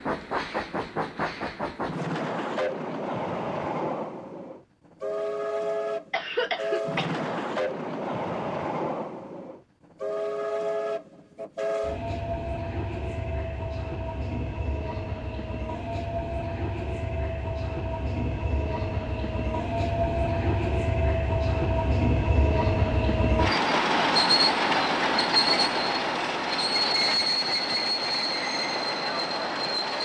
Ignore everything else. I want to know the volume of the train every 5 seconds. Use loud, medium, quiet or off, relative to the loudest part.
medium, medium, medium, medium, loud, loud.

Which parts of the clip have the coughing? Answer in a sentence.
You can hear the coughing from 6.1 to 7.2 s.